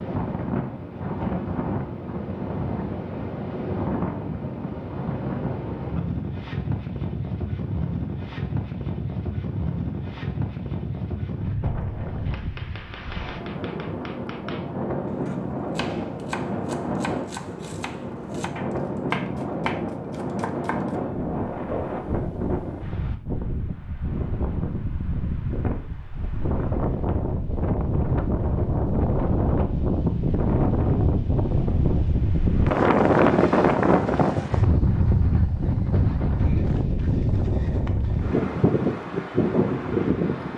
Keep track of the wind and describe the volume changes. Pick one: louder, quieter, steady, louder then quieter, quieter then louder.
louder.